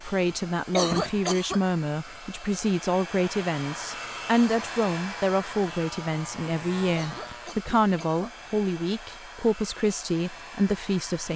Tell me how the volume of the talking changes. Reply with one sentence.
The volume of the talking stays about the same.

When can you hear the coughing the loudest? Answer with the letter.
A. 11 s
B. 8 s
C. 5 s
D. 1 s
D.